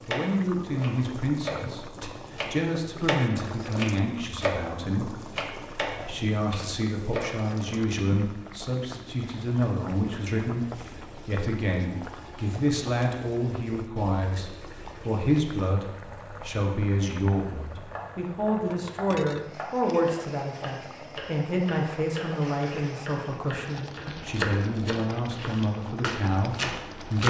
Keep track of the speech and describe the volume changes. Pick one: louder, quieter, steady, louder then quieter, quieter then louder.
steady.